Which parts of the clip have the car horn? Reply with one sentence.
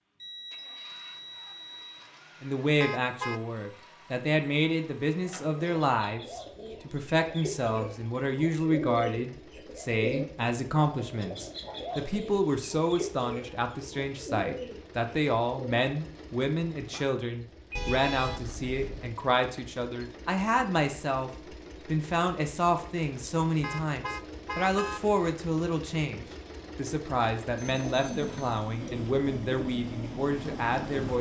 You can hear the car horn from 2.8 to 3.5 s, from 17.8 to 19.1 s and from 23.6 to 25.0 s.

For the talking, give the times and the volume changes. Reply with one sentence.
You can hear the talking from 2.4 to 31.1 s, at a steady volume.